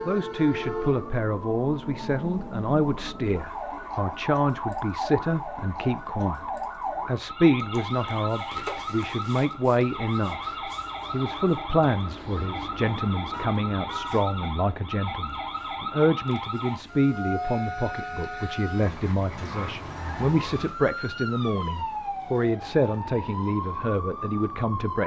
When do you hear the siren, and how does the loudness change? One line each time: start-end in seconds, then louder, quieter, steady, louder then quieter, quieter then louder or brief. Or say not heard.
0.0-25.0 steady.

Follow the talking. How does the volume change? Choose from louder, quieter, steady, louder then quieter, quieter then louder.
steady.